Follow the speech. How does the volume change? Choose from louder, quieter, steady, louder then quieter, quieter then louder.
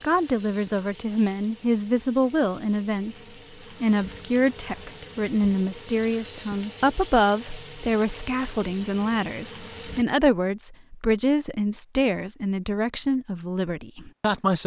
steady.